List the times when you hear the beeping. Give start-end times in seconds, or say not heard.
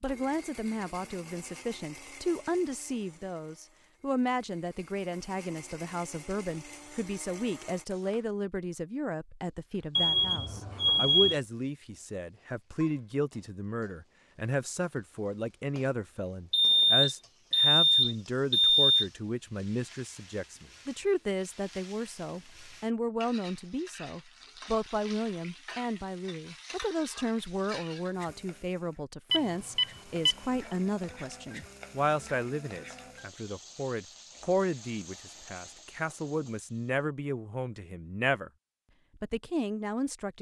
9.9-11.4, 16.5-19.1, 29.3-30.4.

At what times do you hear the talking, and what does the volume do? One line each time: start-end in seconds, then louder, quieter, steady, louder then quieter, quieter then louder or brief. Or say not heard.
0.0-38.5 steady
39.1-40.3 brief.